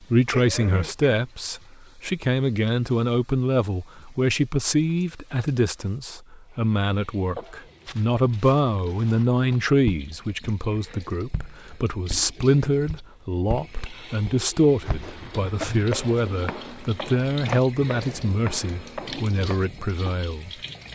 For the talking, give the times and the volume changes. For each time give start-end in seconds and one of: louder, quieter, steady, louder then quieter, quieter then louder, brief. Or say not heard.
0.1-20.5 steady.